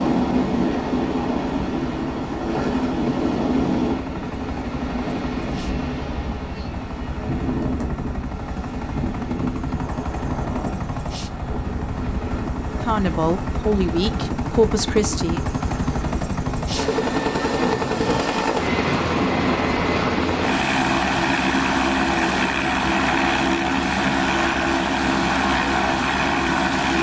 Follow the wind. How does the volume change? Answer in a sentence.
The volume of the wind goes down.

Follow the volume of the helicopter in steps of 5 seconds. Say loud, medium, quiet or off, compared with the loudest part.
quiet, quiet, medium, loud, loud, loud.